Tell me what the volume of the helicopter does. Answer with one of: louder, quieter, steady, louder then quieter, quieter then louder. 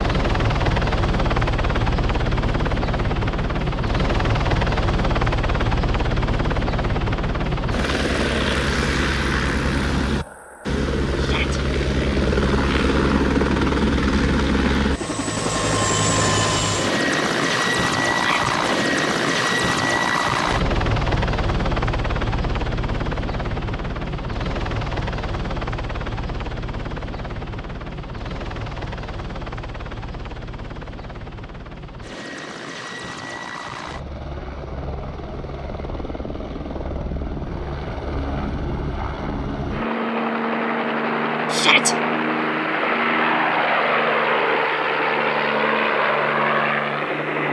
quieter then louder.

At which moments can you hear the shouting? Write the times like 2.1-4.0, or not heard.
11.2-11.6, 18.1-18.6, 41.5-42.0.